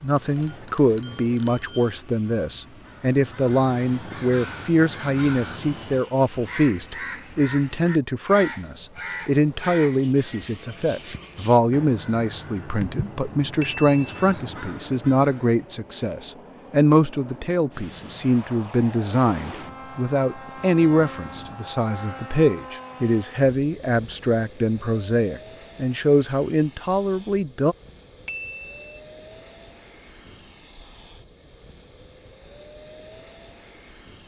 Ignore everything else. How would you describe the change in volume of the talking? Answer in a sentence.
The volume of the talking stays about the same.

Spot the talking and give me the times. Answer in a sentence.
You can hear the talking from 0.0 to 27.8 s.